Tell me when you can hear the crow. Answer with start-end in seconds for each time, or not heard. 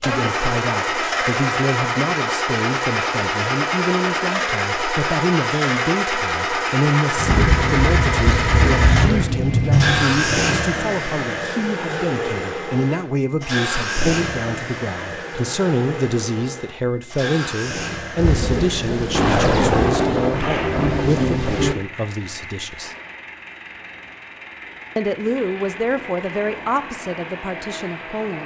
7.2-9.2.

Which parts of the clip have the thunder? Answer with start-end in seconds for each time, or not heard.
7.2-10.2, 18.1-21.8.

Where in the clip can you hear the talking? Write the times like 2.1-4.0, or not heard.
0.0-22.9, 24.9-28.4.